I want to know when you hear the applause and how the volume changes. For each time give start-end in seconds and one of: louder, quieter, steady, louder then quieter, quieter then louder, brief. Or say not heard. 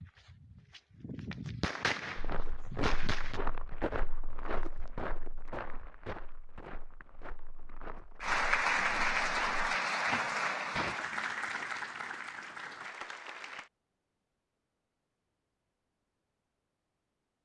8.2-13.7 quieter.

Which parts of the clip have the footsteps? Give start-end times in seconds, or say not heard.
2.1-10.2.